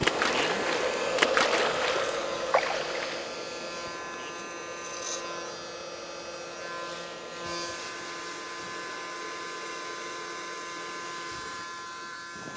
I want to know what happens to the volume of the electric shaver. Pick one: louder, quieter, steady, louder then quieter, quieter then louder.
steady.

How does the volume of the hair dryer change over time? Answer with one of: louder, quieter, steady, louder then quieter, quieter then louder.
quieter.